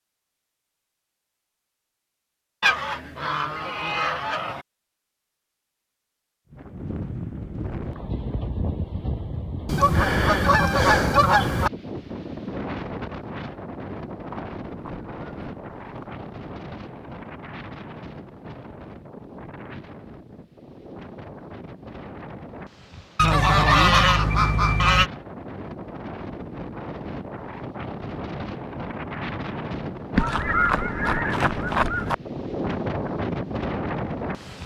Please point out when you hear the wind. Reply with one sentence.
The wind can be heard from 6.5 to 34.6 s.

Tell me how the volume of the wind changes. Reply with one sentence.
The loudness of the wind goes down, then up.